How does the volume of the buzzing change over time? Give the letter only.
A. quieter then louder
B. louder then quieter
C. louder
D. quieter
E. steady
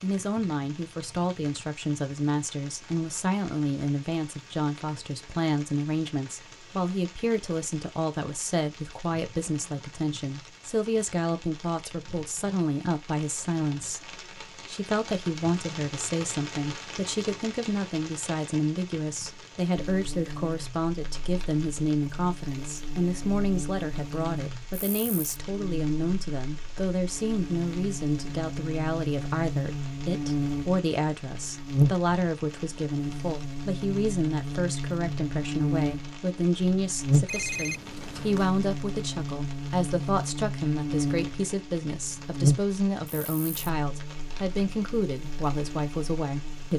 C.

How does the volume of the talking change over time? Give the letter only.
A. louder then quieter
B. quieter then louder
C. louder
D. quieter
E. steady
E.